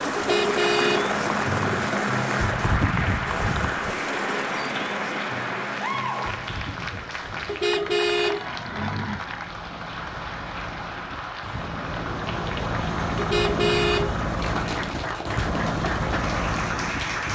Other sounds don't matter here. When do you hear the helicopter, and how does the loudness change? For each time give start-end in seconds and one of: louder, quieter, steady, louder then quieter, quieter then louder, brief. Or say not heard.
0.0-17.3 quieter then louder.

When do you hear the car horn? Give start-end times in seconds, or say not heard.
0.1-1.9, 7.5-9.2, 13.2-14.2.